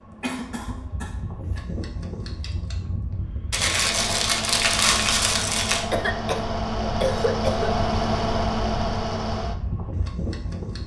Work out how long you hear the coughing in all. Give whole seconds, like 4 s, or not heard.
3 s.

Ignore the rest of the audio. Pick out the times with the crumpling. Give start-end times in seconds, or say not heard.
3.5-5.8.